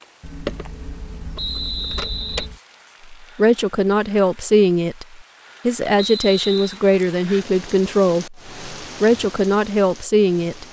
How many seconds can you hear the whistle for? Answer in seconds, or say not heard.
2 s.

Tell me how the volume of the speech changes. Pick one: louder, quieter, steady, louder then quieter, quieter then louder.
steady.